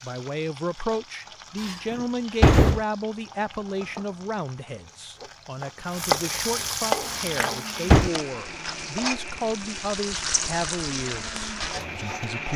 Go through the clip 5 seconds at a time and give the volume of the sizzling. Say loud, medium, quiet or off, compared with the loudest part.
quiet, loud, loud.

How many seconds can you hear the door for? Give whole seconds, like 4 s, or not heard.
2 s.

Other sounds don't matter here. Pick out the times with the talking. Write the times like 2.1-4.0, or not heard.
0.0-12.5.